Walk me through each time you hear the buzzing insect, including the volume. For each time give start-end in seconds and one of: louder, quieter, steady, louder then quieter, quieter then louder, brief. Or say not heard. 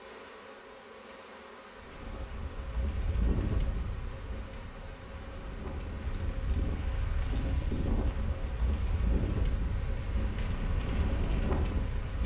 0.0-12.2 steady.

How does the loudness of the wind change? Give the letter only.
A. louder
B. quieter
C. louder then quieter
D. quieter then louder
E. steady
D.